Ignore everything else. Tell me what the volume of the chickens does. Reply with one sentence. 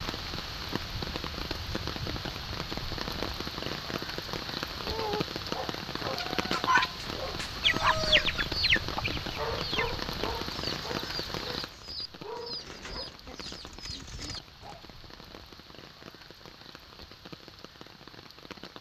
The volume of the chickens goes down.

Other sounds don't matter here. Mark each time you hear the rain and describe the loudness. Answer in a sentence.
The rain can be heard from 0.0 to 18.7 s, getting quieter.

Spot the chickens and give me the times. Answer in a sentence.
You can hear the chickens from 6.0 to 14.8 s.